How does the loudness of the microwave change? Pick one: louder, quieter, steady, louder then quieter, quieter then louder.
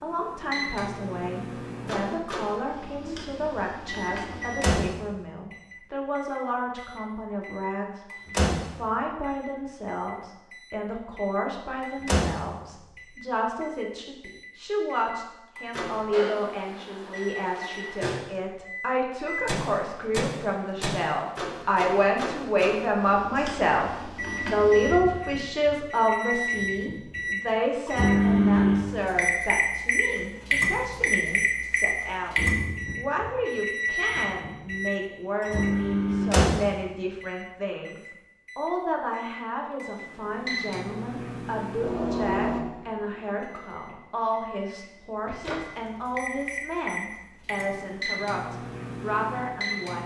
louder then quieter.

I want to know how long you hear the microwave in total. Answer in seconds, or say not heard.
50 s.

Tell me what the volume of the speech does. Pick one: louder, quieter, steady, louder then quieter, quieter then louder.
louder then quieter.